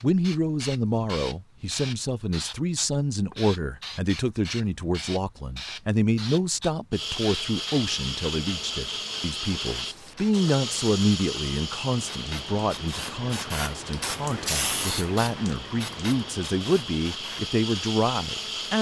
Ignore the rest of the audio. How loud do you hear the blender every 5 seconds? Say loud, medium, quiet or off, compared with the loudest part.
off, loud, loud, loud.